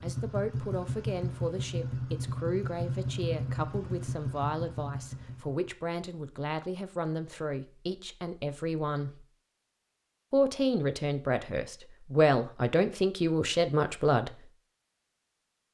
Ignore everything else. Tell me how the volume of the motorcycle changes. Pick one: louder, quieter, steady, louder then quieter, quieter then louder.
steady.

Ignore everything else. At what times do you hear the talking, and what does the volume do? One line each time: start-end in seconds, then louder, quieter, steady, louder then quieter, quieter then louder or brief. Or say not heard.
0.0-9.2 steady
10.3-14.3 quieter then louder.